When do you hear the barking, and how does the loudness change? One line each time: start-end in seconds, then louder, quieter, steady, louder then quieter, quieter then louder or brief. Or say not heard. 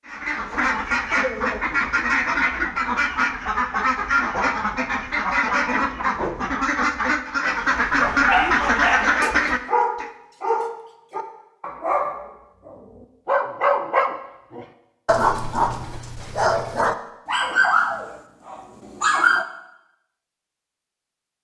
7.8-19.4 steady.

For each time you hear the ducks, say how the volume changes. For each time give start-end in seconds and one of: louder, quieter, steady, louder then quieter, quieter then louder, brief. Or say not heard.
0.1-10.1 steady.